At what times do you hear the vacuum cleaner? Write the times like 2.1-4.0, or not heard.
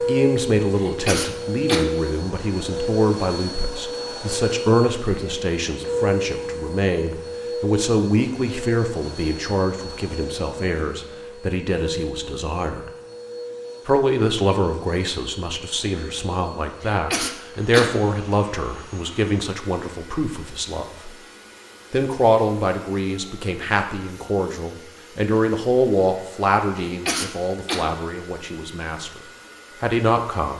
0.0-30.5.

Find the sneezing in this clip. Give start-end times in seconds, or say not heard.
0.8-1.9, 16.8-17.9, 26.9-27.9.